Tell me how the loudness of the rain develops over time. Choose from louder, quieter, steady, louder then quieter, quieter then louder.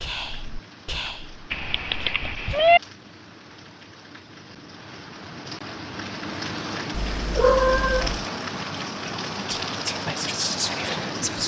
louder.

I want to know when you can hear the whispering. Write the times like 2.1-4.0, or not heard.
0.0-2.6, 9.4-11.4.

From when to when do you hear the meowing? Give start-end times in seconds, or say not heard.
1.5-2.8, 6.9-8.2.